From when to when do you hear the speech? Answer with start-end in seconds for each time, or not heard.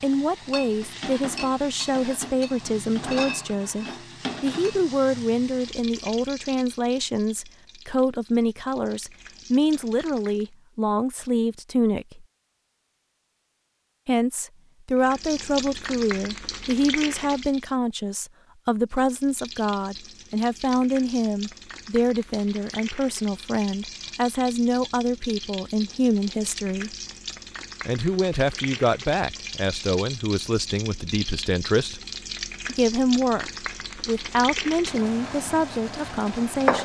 0.0-12.2, 14.1-26.9, 27.9-32.0, 32.6-36.8.